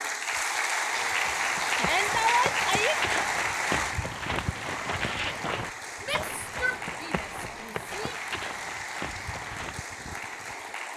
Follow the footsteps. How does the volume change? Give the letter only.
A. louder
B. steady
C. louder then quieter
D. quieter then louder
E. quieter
C.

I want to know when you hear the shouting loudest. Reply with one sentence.
The loudest moment of the shouting is at 2 seconds.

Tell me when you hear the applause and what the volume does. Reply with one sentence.
You can hear the applause from 0.0 to 10.9 s, getting quieter.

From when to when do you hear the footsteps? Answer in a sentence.
You can hear the footsteps from 0.9 to 9.8 s.